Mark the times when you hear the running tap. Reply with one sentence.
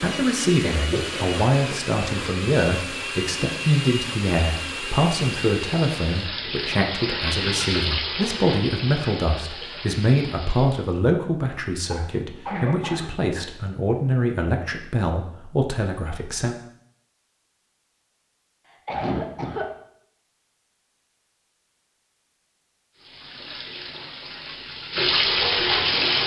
You can hear the running tap from 0.0 to 11.0 s and from 22.9 to 26.2 s.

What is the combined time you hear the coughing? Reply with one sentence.
The coughing can be heard for 3 seconds in total.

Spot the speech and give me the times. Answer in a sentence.
The speech can be heard from 0.0 to 16.6 s.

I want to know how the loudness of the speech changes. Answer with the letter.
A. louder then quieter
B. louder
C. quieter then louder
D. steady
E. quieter
D.